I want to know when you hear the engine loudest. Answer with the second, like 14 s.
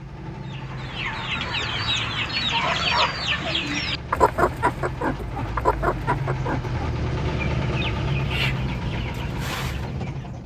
8 s.